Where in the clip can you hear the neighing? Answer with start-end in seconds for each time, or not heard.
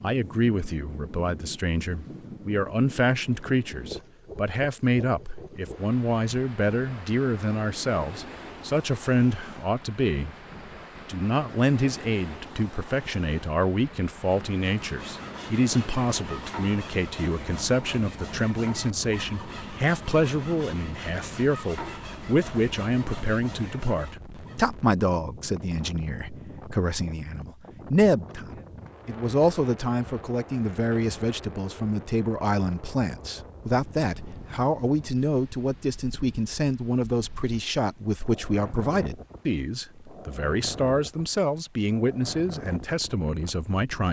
not heard.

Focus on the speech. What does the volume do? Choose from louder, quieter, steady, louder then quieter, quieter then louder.
steady.